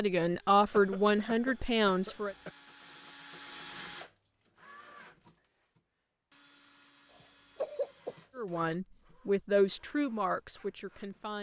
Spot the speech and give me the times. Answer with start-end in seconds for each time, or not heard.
0.0-2.4, 8.3-11.3.